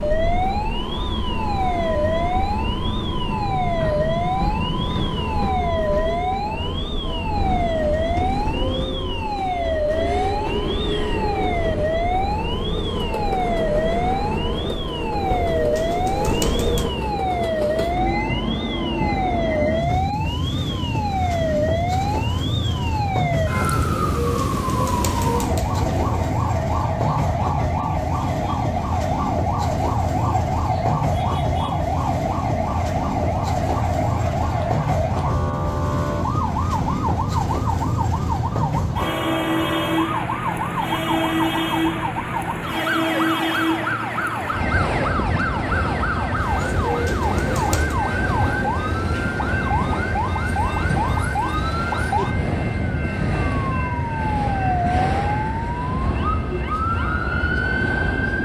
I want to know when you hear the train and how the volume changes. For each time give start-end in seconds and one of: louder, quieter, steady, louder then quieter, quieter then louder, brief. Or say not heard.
0.0-58.4 steady.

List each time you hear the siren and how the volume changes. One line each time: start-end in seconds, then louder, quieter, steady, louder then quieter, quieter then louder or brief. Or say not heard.
0.0-58.4 steady.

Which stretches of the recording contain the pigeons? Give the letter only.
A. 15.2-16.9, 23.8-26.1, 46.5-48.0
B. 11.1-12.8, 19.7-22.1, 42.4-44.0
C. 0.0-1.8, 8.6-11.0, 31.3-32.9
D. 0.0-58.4
A.